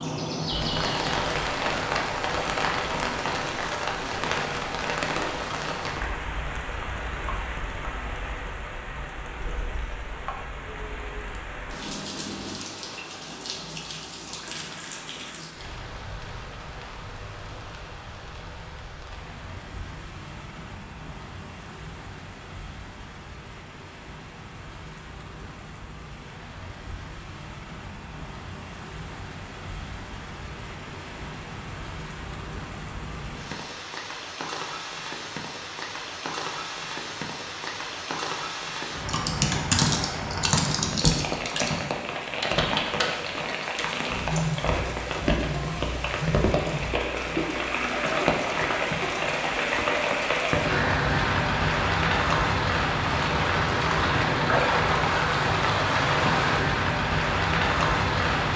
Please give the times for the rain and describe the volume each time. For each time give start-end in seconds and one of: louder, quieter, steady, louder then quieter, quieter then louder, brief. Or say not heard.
0.0-58.5 quieter then louder.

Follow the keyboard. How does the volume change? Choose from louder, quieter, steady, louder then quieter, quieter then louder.
quieter.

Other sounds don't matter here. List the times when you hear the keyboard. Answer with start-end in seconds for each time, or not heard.
39.0-47.4.